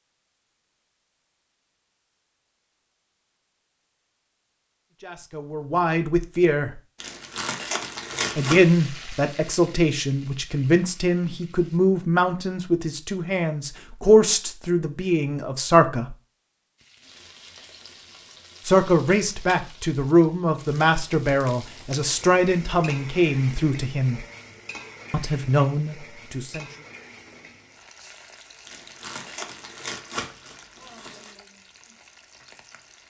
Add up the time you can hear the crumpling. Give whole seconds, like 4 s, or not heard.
4 s.